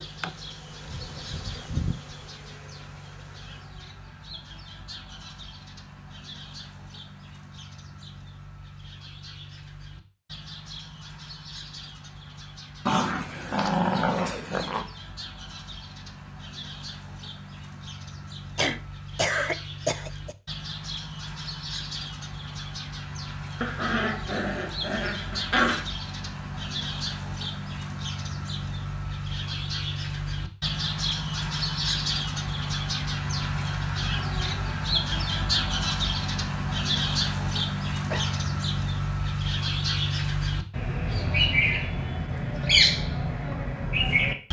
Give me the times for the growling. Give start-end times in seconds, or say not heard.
12.8-14.8, 23.6-25.9.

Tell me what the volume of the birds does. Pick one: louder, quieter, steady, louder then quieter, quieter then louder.
louder.